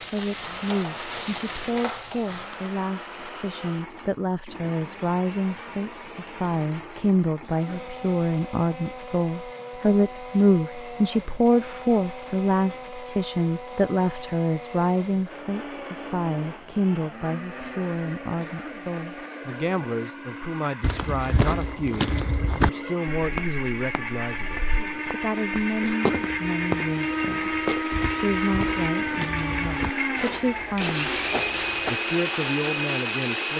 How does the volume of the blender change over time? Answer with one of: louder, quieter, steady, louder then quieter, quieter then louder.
louder.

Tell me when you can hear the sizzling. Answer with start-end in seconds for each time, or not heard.
0.0-2.9.